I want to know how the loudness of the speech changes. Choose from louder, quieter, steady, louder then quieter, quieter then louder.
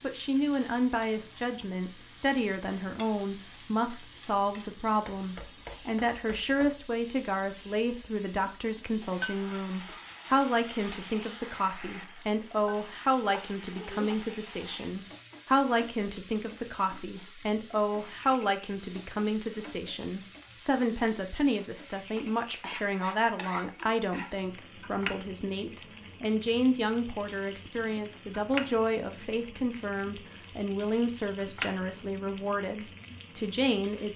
steady.